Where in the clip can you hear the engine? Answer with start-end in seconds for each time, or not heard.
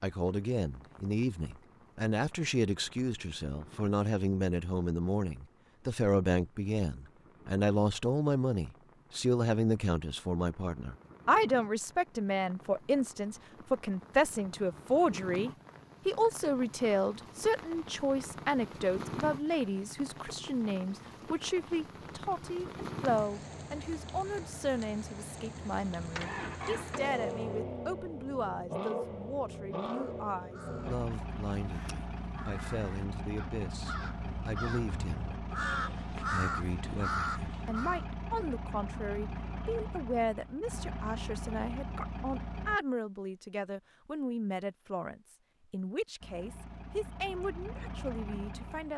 26.0-42.8, 46.2-48.9.